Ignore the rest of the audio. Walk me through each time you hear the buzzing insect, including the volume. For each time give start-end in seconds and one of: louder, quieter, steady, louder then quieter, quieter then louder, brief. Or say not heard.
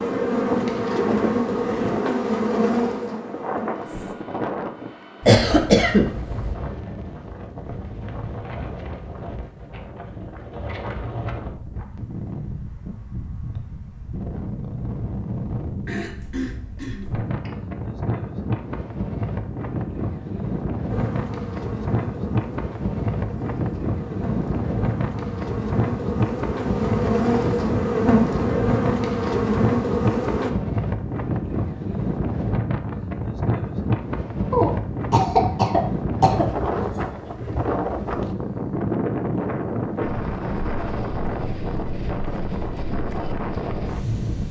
0.0-4.2 quieter
20.9-30.5 louder.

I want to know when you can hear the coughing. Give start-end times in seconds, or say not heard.
5.2-6.5, 15.8-17.5, 34.5-36.5.